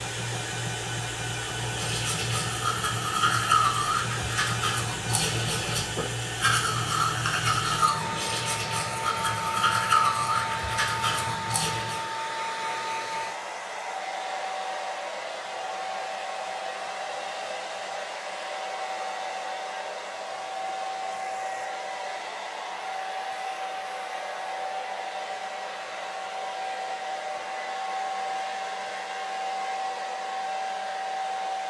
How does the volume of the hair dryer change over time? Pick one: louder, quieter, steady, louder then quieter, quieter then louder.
steady.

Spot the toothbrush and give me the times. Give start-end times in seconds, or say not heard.
1.4-12.1.